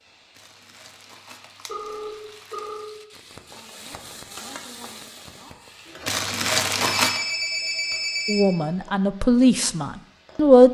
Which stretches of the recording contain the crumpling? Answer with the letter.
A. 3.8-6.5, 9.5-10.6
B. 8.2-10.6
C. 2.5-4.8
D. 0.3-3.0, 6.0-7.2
D.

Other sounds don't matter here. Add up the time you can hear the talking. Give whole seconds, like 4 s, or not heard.
2 s.